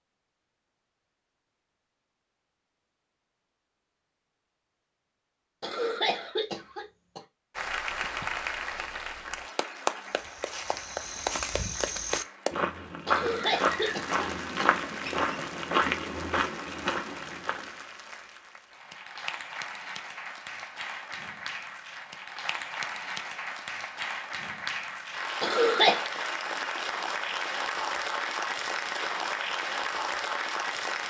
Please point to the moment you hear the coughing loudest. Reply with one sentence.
The loudest moment of the coughing is at 26 seconds.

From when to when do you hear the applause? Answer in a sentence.
The applause can be heard from 7.5 to 31.0 s.